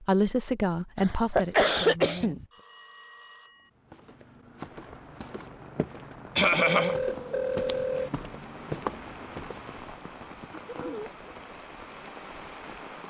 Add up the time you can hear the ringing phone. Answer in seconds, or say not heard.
3 s.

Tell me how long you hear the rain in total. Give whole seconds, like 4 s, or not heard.
8 s.